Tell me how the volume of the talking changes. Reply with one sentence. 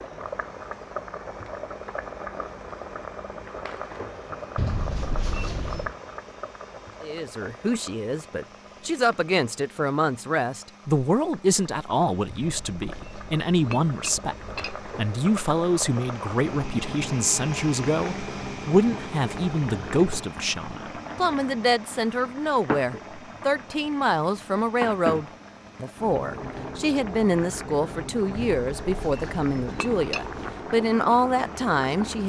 The volume of the talking stays about the same.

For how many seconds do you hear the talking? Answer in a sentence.
The talking can be heard for 25 seconds in total.